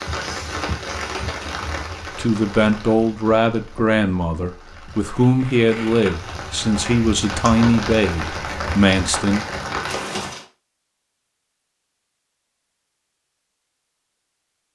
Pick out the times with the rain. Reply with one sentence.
The rain can be heard from 0.0 to 10.4 s.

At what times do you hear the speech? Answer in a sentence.
The speech can be heard from 2.1 to 9.4 s.